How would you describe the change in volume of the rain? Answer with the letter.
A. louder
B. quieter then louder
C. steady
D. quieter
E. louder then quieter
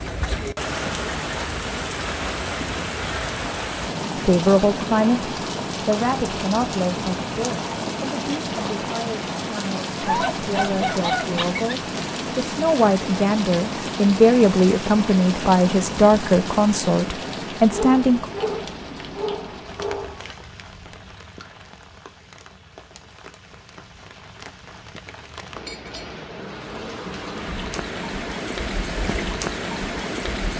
B.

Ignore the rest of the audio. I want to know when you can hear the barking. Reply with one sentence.
You can hear the barking from 10.0 to 11.7 s and from 17.7 to 20.4 s.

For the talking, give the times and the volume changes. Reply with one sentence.
The talking can be heard from 4.2 to 18.3 s, getting quieter then louder.